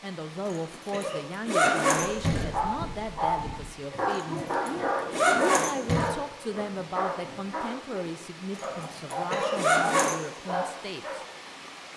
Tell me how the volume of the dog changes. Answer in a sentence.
The loudness of the dog goes down, then up.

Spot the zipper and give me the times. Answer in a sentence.
The zipper can be heard from 0.5 to 2.5 s, from 4.1 to 6.1 s and from 8.6 to 10.2 s.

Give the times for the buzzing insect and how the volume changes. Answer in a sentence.
You can't hear the buzzing insect here.